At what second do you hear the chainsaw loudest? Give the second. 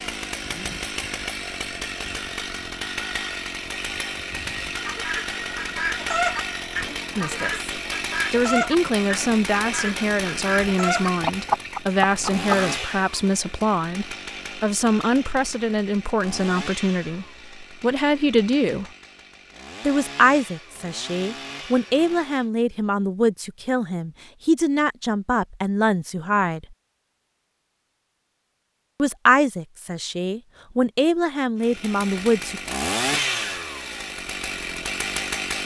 33 s.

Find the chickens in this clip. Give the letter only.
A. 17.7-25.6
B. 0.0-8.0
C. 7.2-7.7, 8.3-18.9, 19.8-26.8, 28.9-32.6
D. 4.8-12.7
D.